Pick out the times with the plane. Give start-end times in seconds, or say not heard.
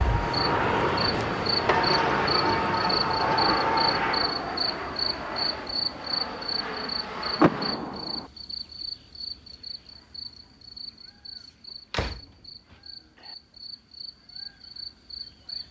0.0-7.8.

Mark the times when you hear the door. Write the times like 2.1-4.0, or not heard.
1.6-3.6, 7.3-8.3, 11.9-13.3.